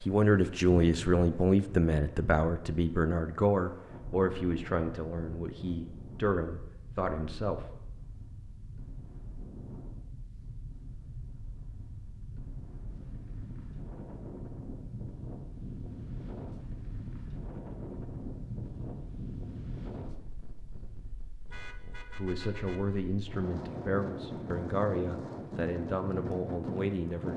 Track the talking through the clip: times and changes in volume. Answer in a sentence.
The talking can be heard from 0.0 to 7.8 s, getting quieter; and from 21.8 to 27.3 s, at a steady volume.